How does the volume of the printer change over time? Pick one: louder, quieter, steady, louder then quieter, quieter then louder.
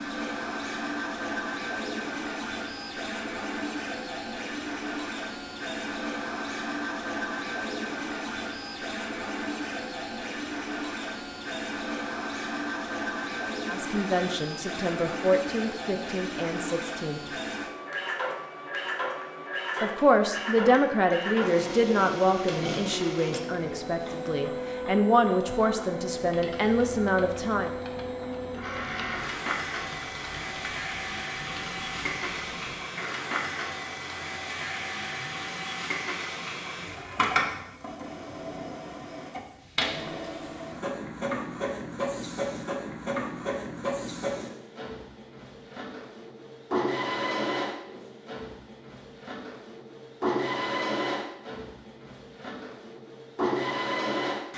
steady.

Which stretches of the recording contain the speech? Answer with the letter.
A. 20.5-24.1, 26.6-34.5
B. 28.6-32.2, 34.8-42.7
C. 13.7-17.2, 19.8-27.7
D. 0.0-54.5
C.